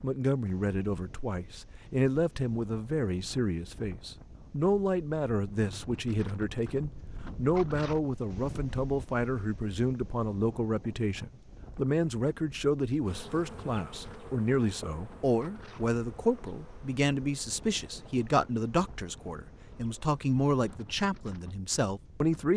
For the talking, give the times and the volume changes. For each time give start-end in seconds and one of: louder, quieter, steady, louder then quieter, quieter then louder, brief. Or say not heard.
0.0-22.5 steady.